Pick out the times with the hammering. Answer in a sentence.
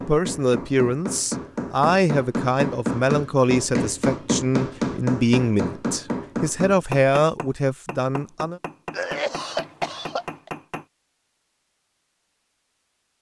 The hammering can be heard from 0.0 to 10.8 s.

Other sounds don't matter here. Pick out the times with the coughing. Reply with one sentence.
The coughing can be heard from 8.9 to 10.5 s.